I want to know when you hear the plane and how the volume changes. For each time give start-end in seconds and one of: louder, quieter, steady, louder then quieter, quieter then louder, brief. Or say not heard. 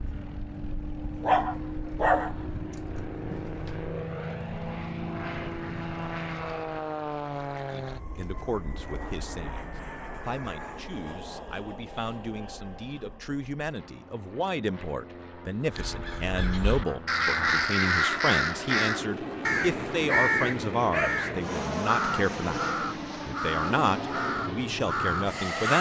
0.0-25.7 quieter then louder.